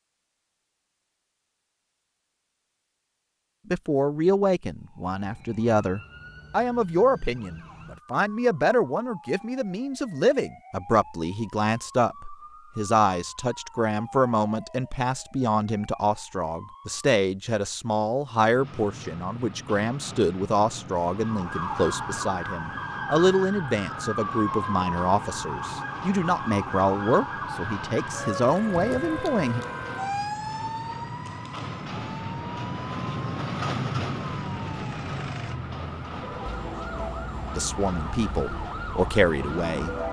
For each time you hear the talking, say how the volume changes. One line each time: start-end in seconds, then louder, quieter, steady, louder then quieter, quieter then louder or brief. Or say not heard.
3.7-29.6 steady
37.5-40.0 brief.